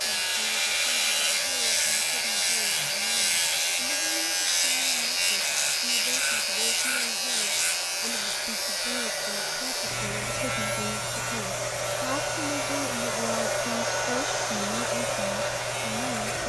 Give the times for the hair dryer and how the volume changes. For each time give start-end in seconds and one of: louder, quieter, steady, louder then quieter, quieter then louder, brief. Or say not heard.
0.0-16.4 louder.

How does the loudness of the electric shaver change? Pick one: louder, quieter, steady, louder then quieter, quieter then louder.
quieter.